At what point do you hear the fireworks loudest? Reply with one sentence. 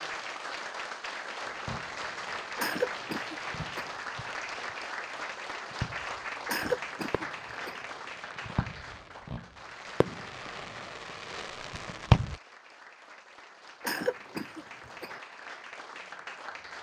The volume of the fireworks peaks at 12 seconds.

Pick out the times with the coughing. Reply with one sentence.
You can hear the coughing from 2.5 to 4.0 s, from 6.5 to 7.8 s and from 13.8 to 15.2 s.